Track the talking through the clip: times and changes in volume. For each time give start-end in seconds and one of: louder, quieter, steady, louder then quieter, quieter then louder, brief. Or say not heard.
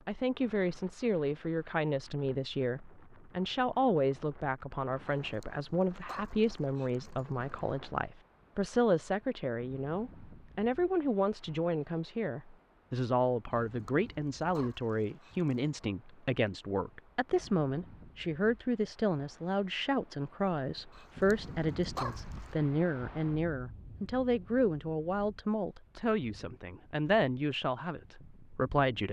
0.1-29.0 steady.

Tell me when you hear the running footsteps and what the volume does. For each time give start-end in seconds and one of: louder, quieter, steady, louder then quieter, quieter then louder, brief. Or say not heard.
not heard.